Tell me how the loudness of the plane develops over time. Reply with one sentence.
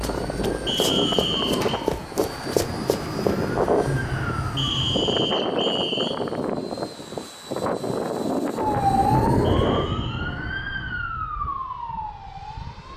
The loudness of the plane goes down.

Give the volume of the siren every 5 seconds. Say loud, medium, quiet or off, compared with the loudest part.
medium, loud, medium.